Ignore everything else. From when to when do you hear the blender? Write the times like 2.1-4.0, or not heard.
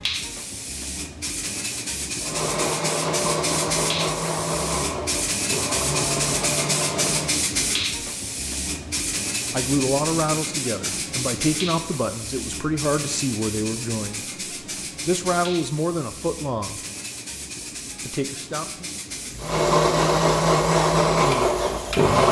2.2-7.5, 19.4-22.2.